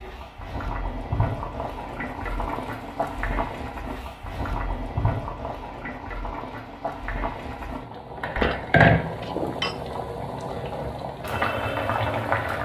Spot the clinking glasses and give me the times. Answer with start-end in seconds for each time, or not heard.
8.3-9.8.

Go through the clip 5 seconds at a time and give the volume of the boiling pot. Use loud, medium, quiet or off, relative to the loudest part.
medium, loud, loud.